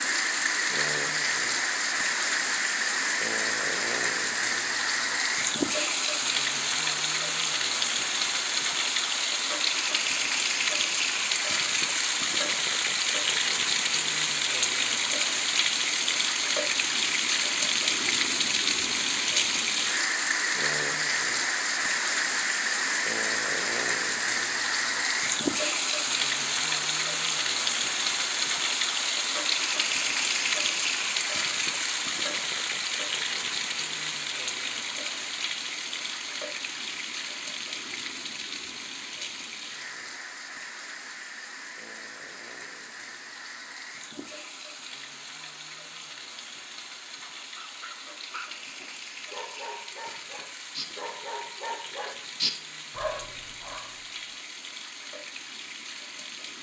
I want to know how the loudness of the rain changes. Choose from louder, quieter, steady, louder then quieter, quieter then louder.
quieter.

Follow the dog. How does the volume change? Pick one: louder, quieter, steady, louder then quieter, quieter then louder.
louder.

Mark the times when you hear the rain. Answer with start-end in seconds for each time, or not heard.
0.0-56.5.